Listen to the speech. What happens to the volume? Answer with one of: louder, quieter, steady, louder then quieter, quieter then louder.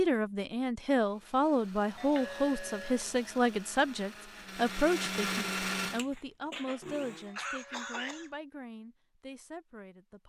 quieter.